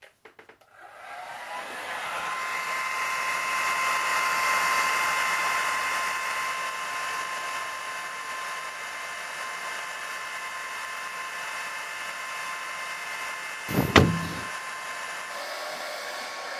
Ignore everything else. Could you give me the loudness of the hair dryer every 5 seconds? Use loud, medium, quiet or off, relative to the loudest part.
loud, loud, medium, medium.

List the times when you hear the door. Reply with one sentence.
The door can be heard from 13.7 to 14.4 s.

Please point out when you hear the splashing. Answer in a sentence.
The splashing can't be heard in this clip.